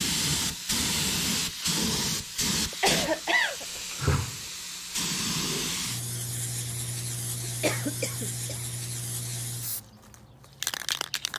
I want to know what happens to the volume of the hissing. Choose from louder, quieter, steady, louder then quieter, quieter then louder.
quieter.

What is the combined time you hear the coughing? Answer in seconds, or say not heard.
2 s.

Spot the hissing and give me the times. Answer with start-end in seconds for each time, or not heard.
0.0-11.3.